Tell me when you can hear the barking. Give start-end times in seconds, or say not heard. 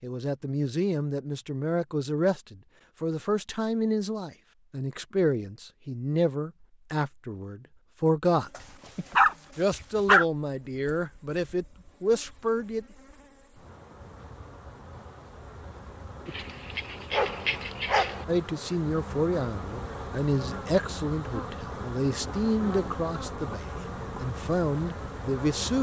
8.6-10.2, 16.2-18.2.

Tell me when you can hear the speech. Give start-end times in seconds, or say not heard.
0.0-8.5, 9.6-12.8, 18.2-25.7.